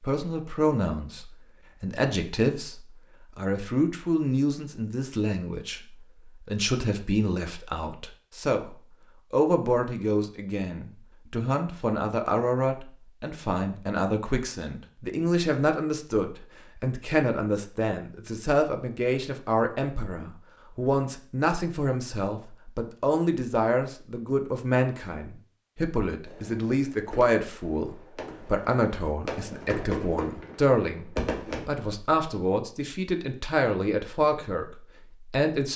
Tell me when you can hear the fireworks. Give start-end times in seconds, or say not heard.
26.2-31.6.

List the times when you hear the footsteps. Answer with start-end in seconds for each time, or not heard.
not heard.